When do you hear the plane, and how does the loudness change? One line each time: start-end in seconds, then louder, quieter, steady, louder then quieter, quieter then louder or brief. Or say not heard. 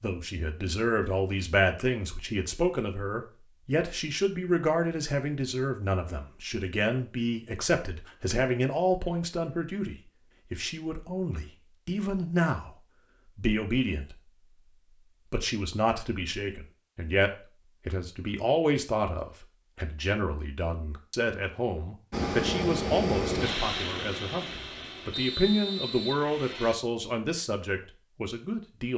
22.1-26.8 quieter.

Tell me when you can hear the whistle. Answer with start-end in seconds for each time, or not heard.
25.1-26.2.